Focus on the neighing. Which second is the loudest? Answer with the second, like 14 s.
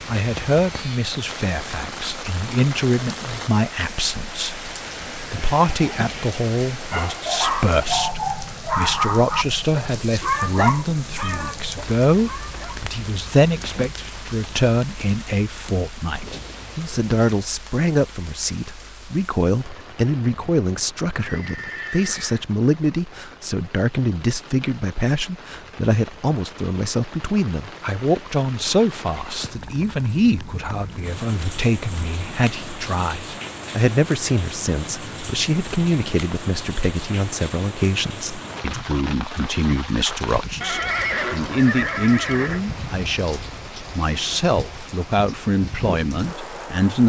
41 s.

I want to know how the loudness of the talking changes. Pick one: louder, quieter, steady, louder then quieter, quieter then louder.
steady.